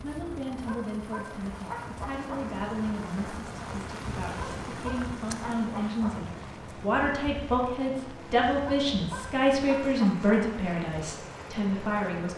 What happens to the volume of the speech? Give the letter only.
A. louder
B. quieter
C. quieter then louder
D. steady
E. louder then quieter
A.